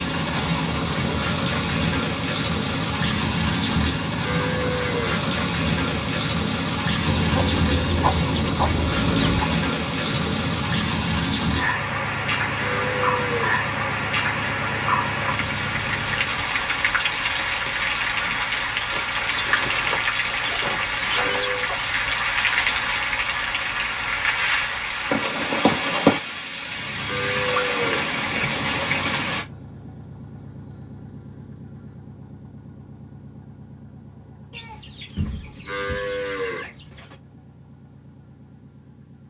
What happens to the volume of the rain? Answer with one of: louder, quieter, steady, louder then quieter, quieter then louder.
steady.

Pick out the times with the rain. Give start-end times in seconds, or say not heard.
0.0-29.4.